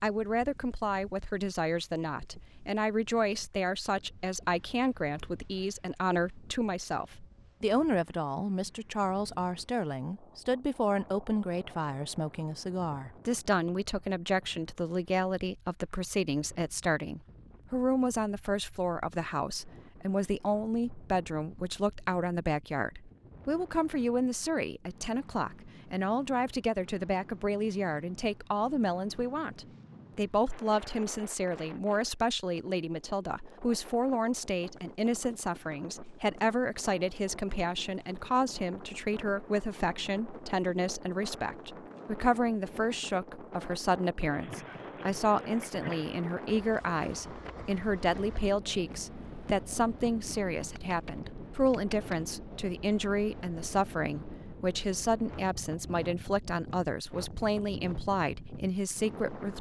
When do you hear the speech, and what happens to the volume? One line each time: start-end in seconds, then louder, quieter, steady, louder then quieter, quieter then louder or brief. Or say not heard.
0.0-59.5 steady.